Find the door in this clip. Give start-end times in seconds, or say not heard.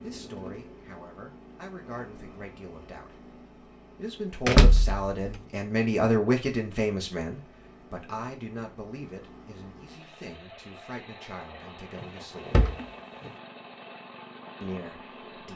4.5-5.3, 12.0-13.3.